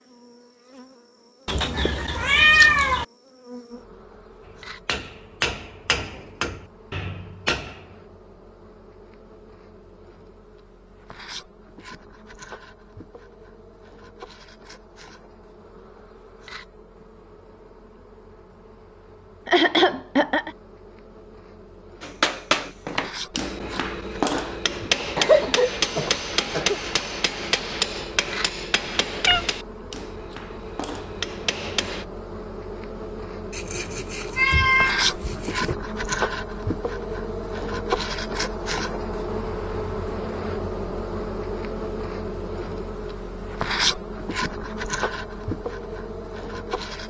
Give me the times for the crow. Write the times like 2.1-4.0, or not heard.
not heard.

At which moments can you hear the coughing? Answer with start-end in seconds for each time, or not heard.
19.4-20.5, 25.1-26.8.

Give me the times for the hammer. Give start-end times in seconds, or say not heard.
4.5-8.0, 22.0-32.0.